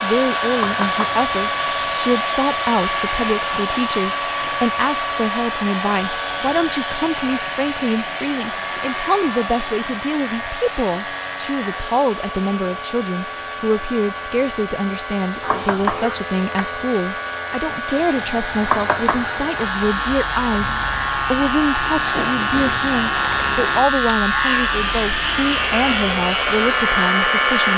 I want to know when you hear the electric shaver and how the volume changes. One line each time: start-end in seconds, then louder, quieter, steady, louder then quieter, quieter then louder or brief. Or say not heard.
0.0-27.7 louder.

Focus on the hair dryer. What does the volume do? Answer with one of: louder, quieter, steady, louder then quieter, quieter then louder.
quieter then louder.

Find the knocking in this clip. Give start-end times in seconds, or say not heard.
0.6-1.2, 15.4-16.8, 18.6-19.4.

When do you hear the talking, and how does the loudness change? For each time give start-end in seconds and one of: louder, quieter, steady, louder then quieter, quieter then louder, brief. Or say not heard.
0.0-27.7 steady.